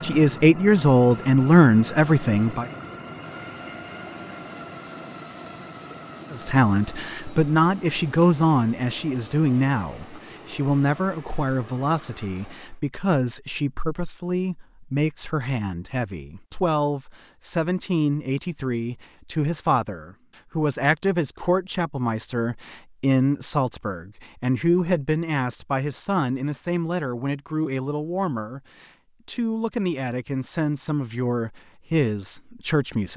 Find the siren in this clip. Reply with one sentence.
The siren can't be heard in this clip.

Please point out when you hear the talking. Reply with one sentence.
The talking can be heard from 0.0 to 2.6 s and from 6.3 to 33.1 s.